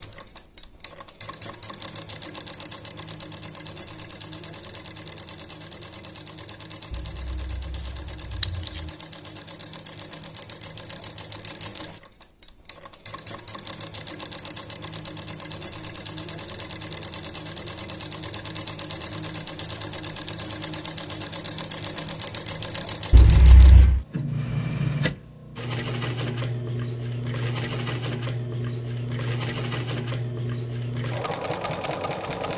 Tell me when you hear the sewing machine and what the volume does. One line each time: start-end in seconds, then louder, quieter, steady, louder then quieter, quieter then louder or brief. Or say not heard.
0.0-32.5 louder.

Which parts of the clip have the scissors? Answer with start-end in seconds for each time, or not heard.
6.9-8.8, 23.1-24.1.